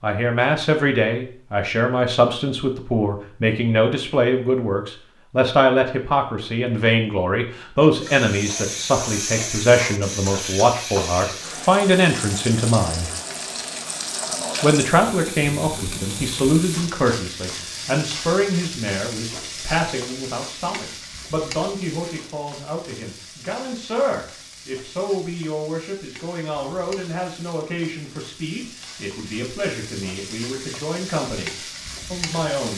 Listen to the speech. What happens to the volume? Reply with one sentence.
The volume of the speech goes down.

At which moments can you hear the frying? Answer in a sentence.
The frying can be heard from 8.0 to 32.7 s.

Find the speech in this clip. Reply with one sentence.
You can hear the speech from 0.0 to 13.1 s and from 14.6 to 32.7 s.